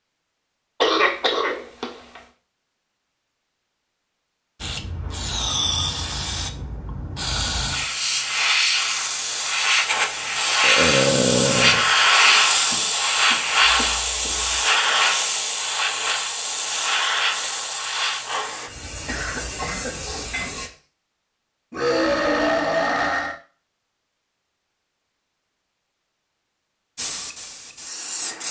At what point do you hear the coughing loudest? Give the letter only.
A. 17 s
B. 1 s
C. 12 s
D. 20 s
B.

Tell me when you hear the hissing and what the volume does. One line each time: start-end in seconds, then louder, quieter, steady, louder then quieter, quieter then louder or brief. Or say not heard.
4.6-20.7 louder then quieter
26.9-28.4 brief.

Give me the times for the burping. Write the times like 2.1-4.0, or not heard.
10.6-11.8, 21.7-23.4.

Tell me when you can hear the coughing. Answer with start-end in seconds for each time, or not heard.
0.8-2.2, 12.2-14.6, 19.1-20.7.